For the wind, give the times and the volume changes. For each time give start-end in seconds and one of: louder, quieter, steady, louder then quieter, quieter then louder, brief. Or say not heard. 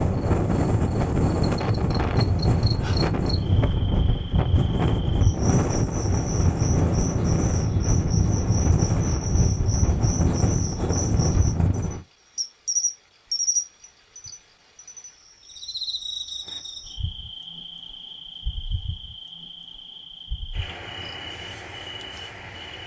0.0-12.0 steady.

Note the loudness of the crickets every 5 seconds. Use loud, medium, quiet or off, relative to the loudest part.
medium, medium, loud, medium, medium.